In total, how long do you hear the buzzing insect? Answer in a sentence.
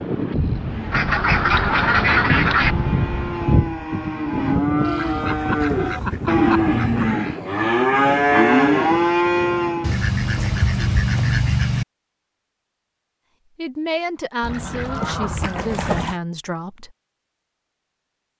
The buzzing insect can't be heard in this clip.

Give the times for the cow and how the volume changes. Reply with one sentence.
You can hear the cow from 0.6 to 9.9 s, getting louder.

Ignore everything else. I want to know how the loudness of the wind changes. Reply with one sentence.
The volume of the wind goes down.